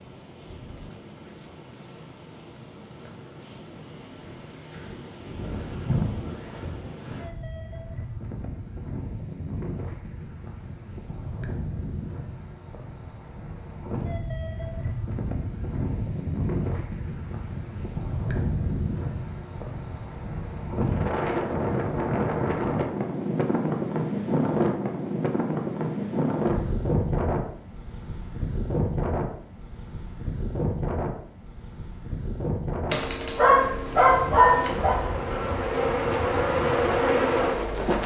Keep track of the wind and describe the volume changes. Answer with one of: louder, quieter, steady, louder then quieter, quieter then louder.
louder then quieter.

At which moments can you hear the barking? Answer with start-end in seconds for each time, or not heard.
32.9-35.0.